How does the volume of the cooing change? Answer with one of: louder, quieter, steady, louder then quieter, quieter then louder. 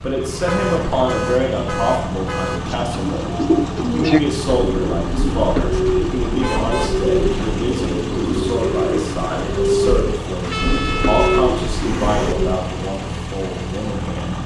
steady.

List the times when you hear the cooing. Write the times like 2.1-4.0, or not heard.
2.6-12.6.